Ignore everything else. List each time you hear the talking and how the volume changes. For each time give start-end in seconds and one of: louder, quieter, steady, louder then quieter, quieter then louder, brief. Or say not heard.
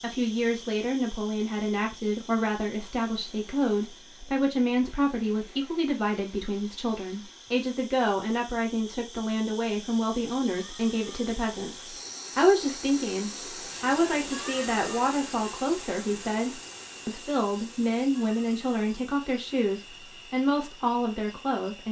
0.0-21.8 steady.